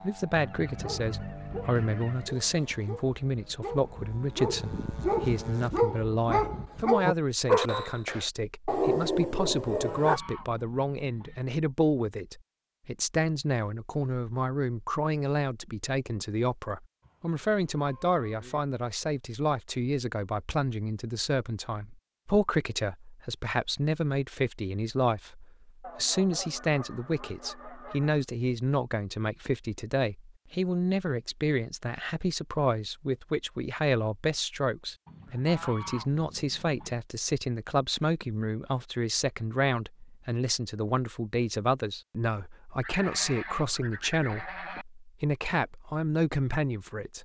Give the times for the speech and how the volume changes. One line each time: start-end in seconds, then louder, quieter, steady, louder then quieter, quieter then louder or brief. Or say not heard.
0.0-47.2 steady.